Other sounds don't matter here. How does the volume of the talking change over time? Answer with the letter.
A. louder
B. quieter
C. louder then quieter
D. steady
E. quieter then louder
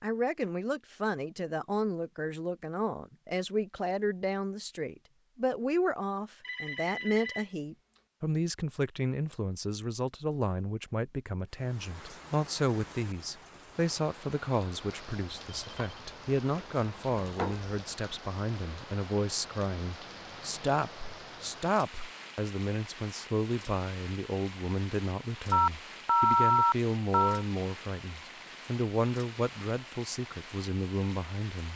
D.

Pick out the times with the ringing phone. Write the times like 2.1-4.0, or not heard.
6.4-7.5, 15.3-17.7, 25.5-27.4.